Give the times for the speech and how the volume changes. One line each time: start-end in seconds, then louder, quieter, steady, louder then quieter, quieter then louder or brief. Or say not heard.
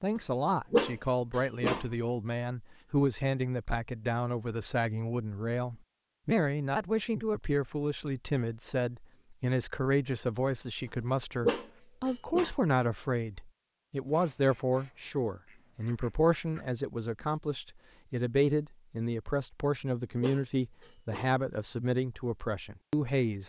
0.0-23.4 steady.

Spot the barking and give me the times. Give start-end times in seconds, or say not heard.
0.7-1.9, 11.4-12.5, 20.2-21.4.